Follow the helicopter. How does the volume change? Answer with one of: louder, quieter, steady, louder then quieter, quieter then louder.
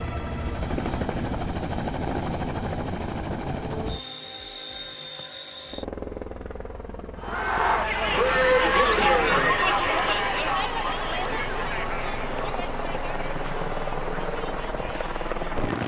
quieter then louder.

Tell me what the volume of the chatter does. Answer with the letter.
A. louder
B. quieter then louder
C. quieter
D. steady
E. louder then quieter
C.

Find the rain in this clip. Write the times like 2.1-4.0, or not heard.
not heard.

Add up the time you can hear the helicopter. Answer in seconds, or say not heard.
16 s.